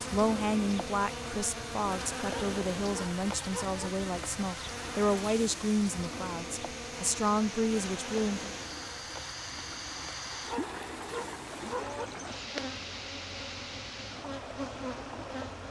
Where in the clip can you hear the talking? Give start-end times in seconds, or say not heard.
0.1-8.6.